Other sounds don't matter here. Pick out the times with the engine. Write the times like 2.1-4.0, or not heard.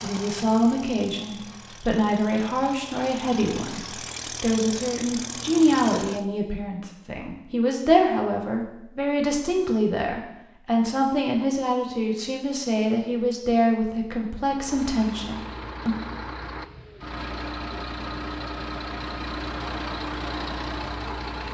0.0-6.2, 14.5-21.4.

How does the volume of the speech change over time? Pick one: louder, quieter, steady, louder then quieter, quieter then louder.
steady.